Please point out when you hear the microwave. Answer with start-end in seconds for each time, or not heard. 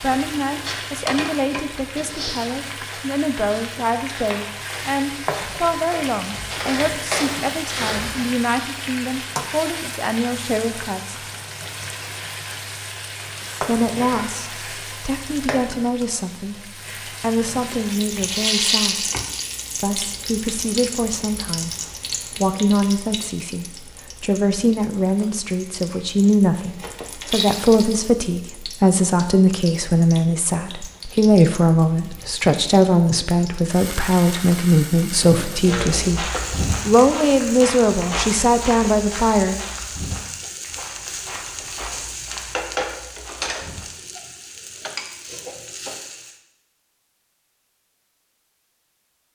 not heard.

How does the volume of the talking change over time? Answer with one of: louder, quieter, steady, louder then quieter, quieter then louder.
louder.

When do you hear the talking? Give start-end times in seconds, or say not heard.
0.0-11.2, 13.6-19.1, 19.8-39.6.